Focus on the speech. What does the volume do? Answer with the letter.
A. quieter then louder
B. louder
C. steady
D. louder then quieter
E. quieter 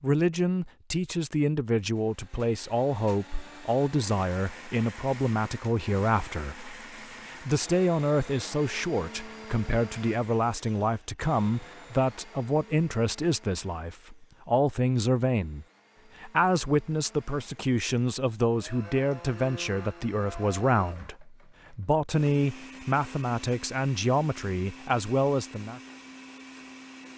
C.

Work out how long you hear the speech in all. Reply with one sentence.
You can hear the speech for 26 seconds altogether.